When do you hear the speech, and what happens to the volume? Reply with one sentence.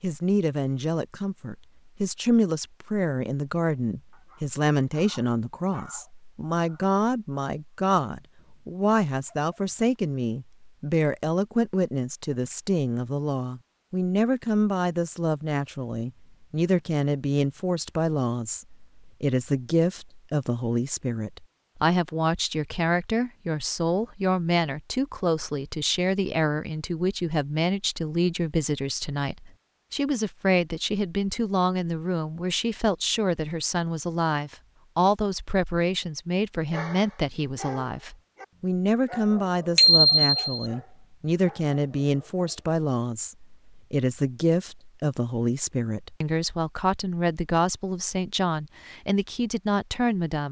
You can hear the speech from 0.0 to 50.4 s, at a steady volume.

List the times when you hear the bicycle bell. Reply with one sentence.
You can hear the bicycle bell from 39.8 to 40.6 s.